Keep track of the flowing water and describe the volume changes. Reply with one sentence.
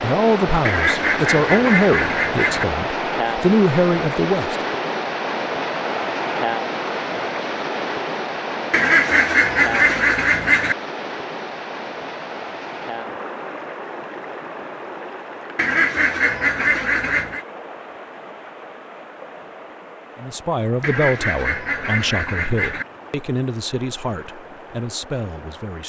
The volume of the flowing water goes down.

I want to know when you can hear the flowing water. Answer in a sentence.
The flowing water can be heard from 0.0 to 25.8 s.